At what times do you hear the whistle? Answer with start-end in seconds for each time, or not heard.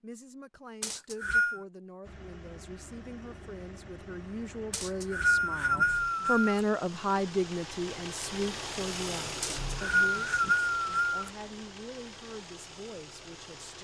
0.8-1.6, 4.7-6.6, 9.4-11.3.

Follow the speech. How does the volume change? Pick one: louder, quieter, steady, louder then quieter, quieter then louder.
louder then quieter.